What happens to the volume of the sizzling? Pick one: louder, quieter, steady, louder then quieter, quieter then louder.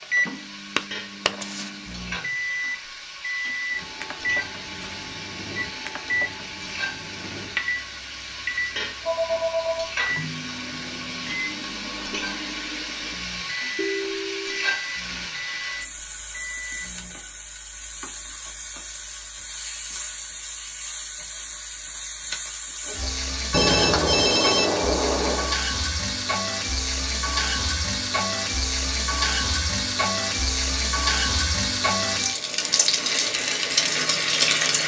louder.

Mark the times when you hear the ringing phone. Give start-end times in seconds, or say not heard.
9.0-9.9, 13.8-14.8, 23.5-25.6.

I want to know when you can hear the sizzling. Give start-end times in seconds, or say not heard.
0.0-34.8.